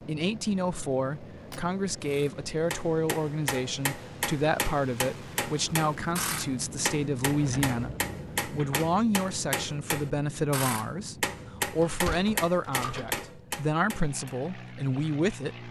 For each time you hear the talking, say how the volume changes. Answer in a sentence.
The talking can be heard from 0.1 to 15.6 s, at a steady volume.